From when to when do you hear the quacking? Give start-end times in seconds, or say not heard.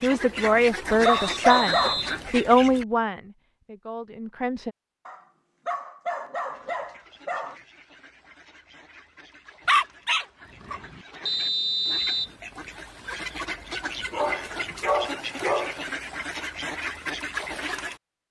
0.0-2.9, 6.5-18.0.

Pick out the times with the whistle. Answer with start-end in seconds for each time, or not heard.
1.0-2.2, 11.2-12.3.